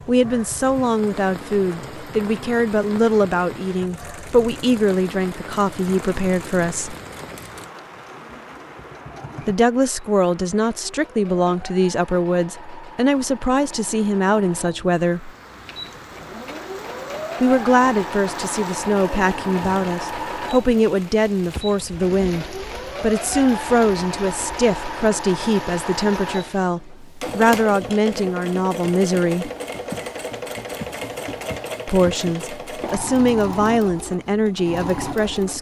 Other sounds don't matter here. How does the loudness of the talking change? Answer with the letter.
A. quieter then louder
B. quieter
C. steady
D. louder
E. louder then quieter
C.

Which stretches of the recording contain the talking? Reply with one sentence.
You can hear the talking from 0.1 to 7.0 s, from 9.4 to 15.3 s, from 17.4 to 29.5 s and from 31.9 to 35.5 s.